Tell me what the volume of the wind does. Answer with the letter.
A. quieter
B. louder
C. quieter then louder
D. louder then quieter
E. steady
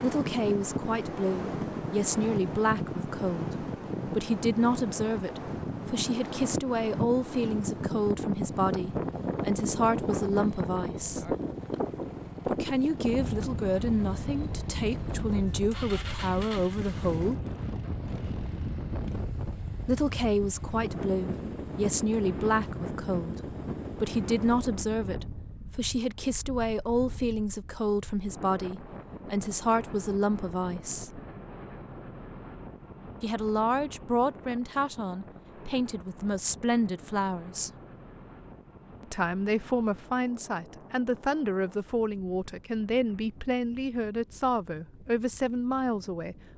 A.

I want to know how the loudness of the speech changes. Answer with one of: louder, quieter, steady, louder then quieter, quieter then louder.
steady.